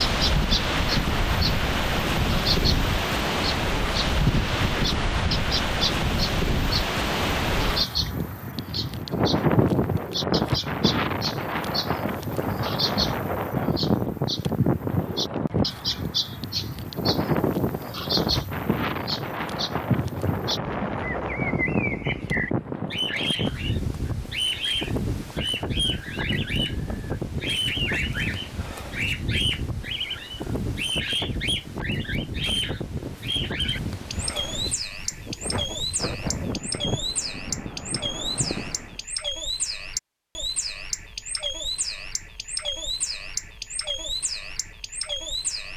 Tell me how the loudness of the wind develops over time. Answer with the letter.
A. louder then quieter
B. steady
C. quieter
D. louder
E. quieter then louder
C.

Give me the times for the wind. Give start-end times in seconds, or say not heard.
0.0-39.0.